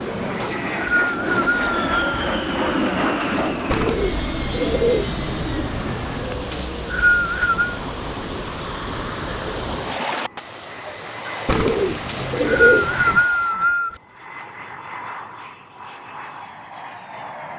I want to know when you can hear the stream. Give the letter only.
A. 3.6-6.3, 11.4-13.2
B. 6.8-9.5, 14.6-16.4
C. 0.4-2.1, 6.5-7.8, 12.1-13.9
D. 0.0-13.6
D.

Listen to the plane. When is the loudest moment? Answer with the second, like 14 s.
3 s.